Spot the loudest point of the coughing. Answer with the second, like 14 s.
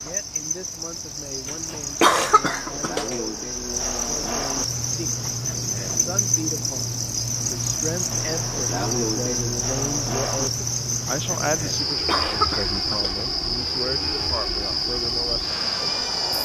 2 s.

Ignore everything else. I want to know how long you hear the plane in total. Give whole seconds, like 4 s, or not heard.
12 s.